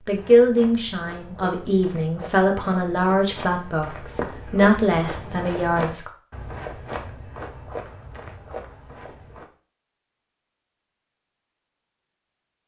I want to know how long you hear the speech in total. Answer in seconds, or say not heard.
6 s.